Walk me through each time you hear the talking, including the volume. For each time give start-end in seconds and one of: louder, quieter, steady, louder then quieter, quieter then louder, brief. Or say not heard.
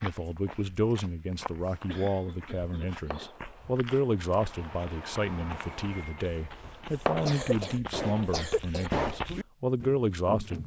0.0-10.6 steady.